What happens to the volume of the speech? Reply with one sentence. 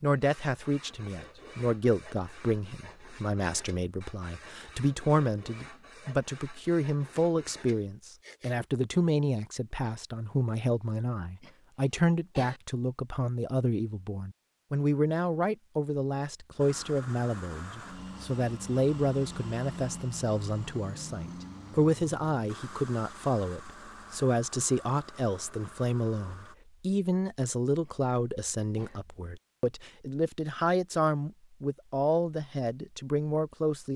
The loudness of the speech stays about the same.